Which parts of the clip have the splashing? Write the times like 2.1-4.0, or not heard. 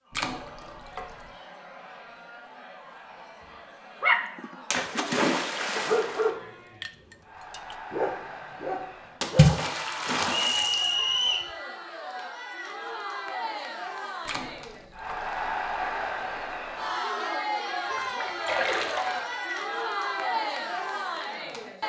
0.1-1.2, 4.7-6.2, 9.2-10.9, 14.2-15.3, 17.9-19.6.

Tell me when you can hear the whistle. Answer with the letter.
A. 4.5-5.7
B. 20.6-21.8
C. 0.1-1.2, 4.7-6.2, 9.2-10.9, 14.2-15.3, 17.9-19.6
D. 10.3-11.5
D.